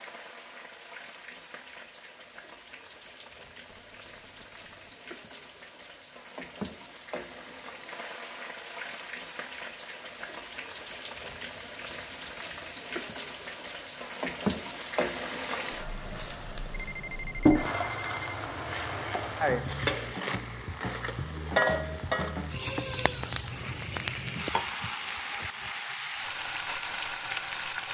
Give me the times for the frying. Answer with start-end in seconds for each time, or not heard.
0.0-27.8.